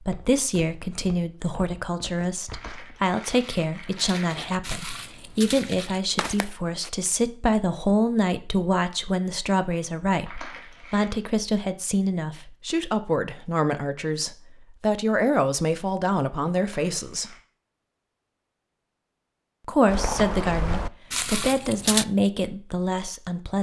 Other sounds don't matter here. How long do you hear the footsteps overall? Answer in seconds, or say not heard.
9 s.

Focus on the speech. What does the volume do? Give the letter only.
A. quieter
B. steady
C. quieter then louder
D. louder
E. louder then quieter
B.